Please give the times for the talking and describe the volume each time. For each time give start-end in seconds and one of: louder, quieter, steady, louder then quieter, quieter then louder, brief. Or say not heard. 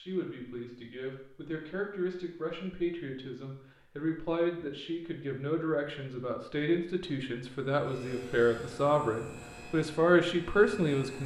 0.0-11.2 louder.